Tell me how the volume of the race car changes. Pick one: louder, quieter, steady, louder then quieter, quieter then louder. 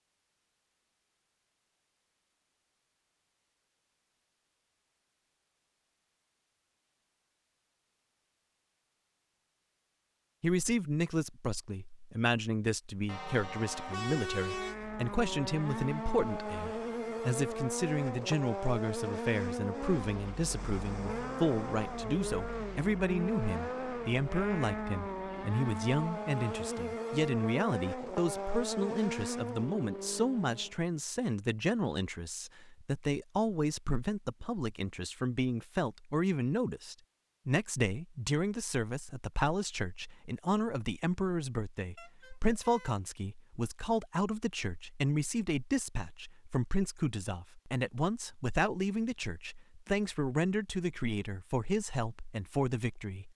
steady.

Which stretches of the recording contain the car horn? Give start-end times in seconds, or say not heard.
13.1-14.8, 42.0-43.0.